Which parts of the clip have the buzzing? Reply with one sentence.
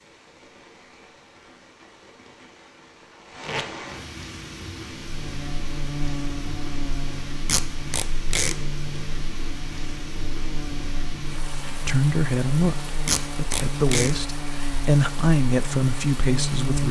The buzzing can be heard from 5.0 to 16.8 s.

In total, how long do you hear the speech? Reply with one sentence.
The speech can be heard for 5 seconds in total.